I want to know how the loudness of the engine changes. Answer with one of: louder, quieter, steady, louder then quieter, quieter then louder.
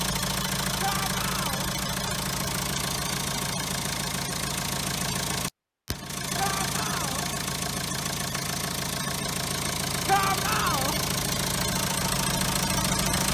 steady.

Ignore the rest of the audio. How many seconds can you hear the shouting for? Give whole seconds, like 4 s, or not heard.
3 s.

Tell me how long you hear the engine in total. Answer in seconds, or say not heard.
13 s.